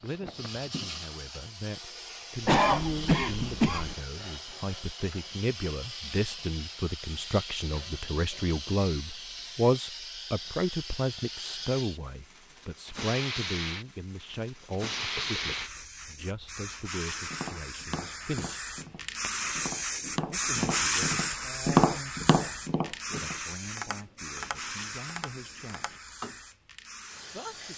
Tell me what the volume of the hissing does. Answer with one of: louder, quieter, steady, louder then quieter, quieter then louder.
louder then quieter.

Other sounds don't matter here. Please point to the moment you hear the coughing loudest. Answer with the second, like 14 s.
3 s.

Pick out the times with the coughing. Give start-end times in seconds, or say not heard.
2.5-4.0.